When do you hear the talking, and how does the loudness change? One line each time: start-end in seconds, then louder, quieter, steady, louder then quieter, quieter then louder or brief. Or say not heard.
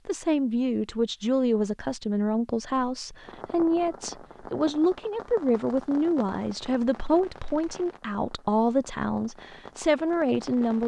0.1-10.8 steady.